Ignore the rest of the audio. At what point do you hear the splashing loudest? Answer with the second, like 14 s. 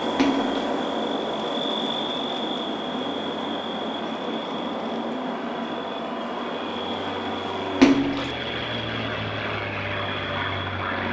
8 s.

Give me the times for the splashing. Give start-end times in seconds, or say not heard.
0.1-0.6, 7.8-8.3.